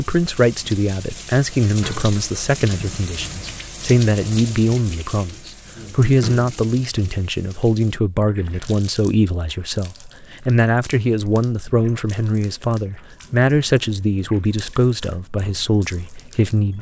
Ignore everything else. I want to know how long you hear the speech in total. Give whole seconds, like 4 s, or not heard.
17 s.